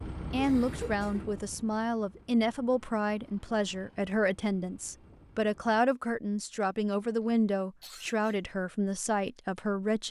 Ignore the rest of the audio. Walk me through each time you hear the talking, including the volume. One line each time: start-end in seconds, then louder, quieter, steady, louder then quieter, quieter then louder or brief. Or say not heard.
0.3-10.0 steady.